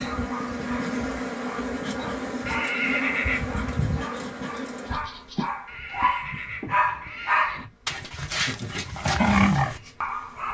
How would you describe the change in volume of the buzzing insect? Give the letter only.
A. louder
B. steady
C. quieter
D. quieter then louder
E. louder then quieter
C.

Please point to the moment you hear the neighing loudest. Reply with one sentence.
The loudest moment of the neighing is at 3 seconds.